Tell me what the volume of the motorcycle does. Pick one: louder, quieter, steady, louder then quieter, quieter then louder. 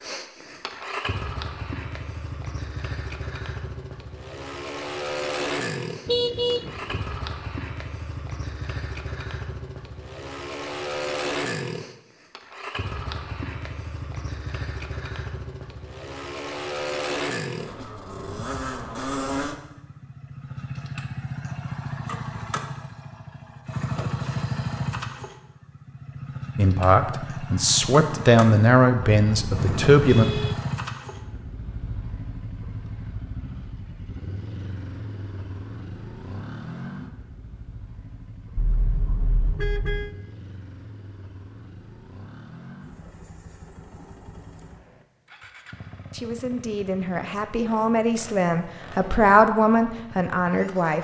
quieter.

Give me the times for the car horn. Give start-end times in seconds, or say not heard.
6.0-7.1, 29.1-30.6, 38.5-40.1.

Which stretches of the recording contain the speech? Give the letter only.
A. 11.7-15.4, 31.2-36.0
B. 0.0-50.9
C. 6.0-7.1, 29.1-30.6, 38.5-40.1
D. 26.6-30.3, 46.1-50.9
D.